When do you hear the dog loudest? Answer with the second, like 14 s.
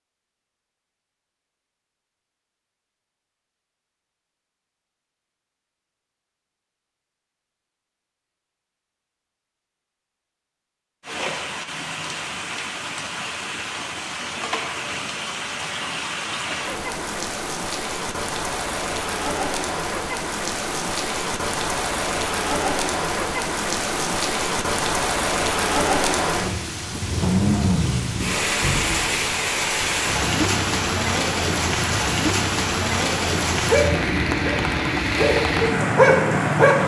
36 s.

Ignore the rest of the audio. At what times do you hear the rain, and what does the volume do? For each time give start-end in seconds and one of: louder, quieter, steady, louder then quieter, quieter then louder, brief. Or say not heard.
11.0-36.8 louder.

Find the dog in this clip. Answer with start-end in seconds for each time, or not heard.
33.6-36.8.